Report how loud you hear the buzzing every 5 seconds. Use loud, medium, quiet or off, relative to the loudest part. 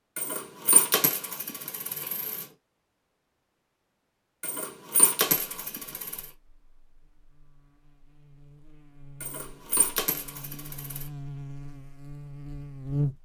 off, quiet, loud.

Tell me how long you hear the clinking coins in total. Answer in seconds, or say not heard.
6 s.